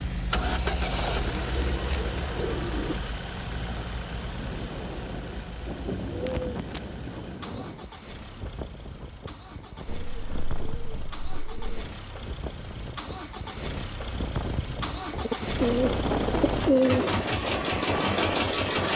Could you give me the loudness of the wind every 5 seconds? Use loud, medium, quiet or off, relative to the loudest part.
medium, medium, medium, loud.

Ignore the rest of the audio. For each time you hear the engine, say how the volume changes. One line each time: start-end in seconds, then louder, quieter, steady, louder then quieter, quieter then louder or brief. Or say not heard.
0.0-18.9 quieter then louder.